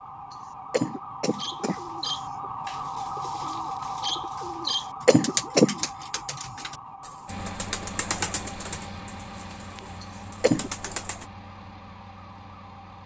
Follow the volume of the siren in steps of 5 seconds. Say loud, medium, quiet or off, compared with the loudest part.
loud, medium, quiet.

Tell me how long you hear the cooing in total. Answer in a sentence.
You can hear the cooing for 10 seconds altogether.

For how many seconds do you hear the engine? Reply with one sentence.
You can hear the engine for 6 seconds altogether.